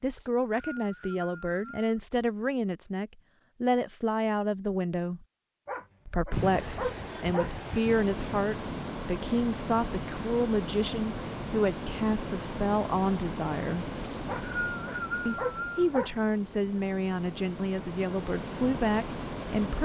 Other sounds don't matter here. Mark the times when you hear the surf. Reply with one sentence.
The surf can be heard from 6.3 to 19.8 s.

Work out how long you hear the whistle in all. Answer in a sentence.
You can hear the whistle for 4 seconds altogether.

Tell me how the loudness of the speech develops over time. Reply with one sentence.
The loudness of the speech stays about the same.